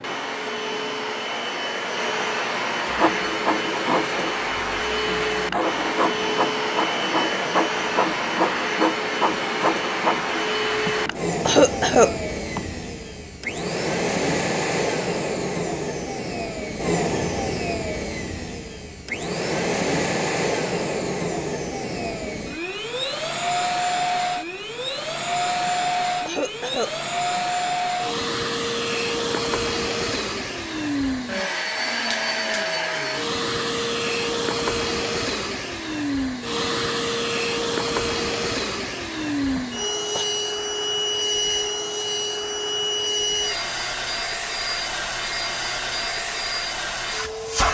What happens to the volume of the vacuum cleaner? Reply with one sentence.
The loudness of the vacuum cleaner stays about the same.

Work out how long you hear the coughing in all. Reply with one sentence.
The coughing can be heard for 4 seconds in total.